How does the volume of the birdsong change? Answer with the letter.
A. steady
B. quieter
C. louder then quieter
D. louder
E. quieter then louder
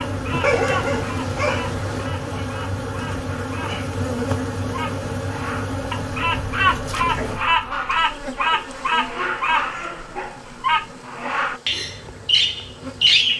D.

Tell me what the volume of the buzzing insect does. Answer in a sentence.
The volume of the buzzing insect goes down.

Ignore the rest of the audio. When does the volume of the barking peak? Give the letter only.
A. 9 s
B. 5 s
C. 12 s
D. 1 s
D.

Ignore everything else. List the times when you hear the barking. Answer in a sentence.
The barking can be heard from 0.4 to 2.1 s and from 8.5 to 10.3 s.